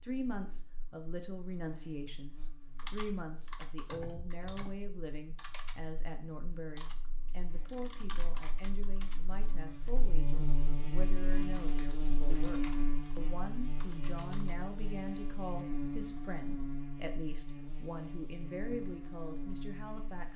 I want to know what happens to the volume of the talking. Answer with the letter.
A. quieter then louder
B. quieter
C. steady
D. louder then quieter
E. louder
C.